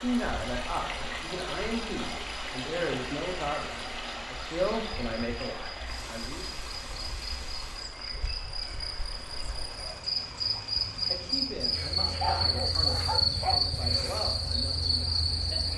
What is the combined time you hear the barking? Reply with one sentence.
You can hear the barking for 2 seconds altogether.